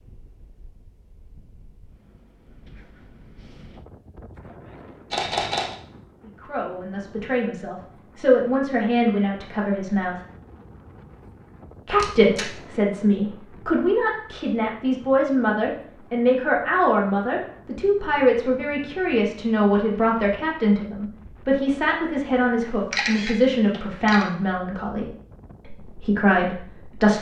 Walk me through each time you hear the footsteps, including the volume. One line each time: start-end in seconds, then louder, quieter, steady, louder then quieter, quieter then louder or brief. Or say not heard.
not heard.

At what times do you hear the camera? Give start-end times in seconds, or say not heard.
5.1-5.8, 11.9-12.5, 22.9-24.2.